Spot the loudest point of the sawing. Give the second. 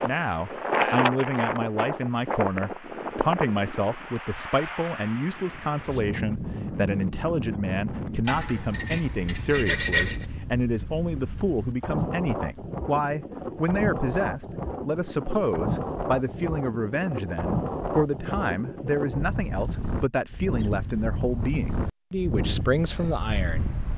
10 s.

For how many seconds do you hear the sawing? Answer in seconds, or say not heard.
2 s.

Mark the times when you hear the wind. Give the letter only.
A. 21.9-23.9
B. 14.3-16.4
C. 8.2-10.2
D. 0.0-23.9
D.